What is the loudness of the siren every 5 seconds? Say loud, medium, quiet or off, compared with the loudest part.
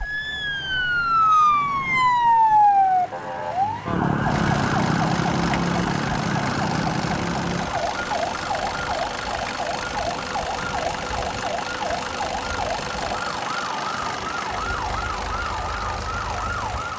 loud, medium, medium, medium.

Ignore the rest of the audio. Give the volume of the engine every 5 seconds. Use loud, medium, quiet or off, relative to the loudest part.
medium, loud, loud, loud.